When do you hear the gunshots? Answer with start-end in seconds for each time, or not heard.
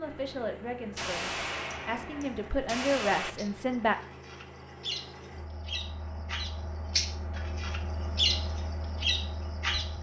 0.9-3.3.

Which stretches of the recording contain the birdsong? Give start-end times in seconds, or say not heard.
3.4-9.9.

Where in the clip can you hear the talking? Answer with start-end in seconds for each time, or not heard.
0.0-4.0.